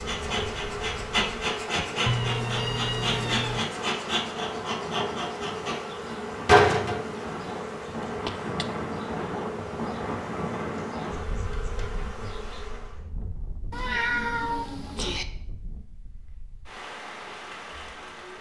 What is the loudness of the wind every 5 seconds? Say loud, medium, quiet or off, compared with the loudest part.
medium, loud, loud, medium.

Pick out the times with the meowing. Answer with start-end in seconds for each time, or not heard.
1.8-3.6, 8.2-8.7, 13.7-15.2.